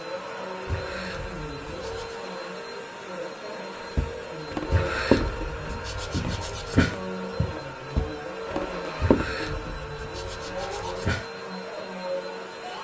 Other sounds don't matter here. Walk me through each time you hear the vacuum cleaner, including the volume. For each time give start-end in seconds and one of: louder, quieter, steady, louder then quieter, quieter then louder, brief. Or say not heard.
0.0-12.8 steady.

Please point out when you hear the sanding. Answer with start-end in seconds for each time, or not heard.
0.7-2.2, 4.7-7.0, 8.9-11.2.